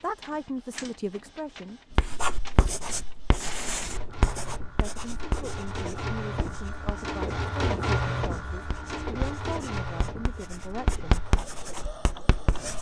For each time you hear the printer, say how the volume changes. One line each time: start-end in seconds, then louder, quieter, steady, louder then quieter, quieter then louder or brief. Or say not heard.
0.0-12.7 louder then quieter.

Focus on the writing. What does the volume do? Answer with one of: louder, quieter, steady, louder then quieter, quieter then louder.
quieter then louder.